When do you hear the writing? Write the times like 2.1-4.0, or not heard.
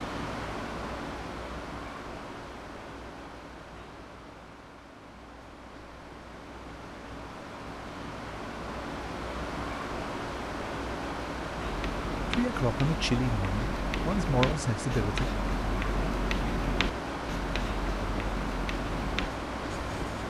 11.6-20.2.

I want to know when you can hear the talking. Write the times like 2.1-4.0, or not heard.
12.3-15.2.